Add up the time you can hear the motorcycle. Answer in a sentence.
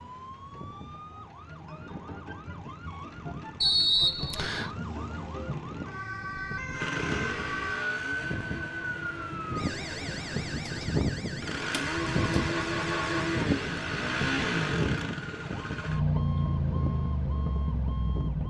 You can hear the motorcycle for 12 seconds altogether.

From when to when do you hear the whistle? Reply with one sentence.
You can hear the whistle from 3.6 to 4.8 s.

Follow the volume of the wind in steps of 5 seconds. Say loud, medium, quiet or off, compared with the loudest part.
quiet, medium, loud, medium.